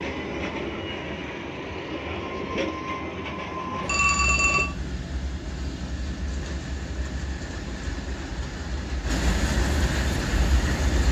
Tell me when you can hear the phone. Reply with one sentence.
You can hear the phone from 3.8 to 4.7 s.